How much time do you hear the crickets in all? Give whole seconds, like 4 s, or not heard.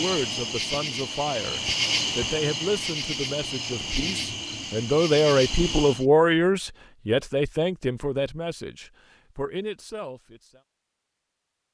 6 s.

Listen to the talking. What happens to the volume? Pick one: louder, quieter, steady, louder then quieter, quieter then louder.
louder then quieter.